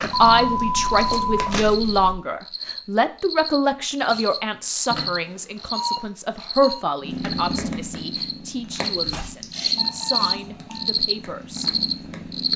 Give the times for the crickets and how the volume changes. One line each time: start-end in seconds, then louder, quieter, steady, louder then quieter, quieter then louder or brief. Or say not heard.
0.0-12.5 louder.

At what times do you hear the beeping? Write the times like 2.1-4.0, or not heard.
0.1-2.1, 4.9-6.8, 9.8-10.9.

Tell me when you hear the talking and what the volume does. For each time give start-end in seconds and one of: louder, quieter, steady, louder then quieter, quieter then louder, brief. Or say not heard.
0.0-11.7 quieter.